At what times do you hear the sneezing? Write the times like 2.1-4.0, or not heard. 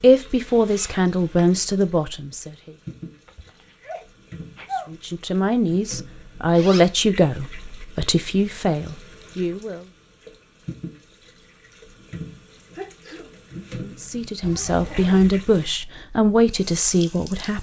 3.2-4.9, 12.8-13.3.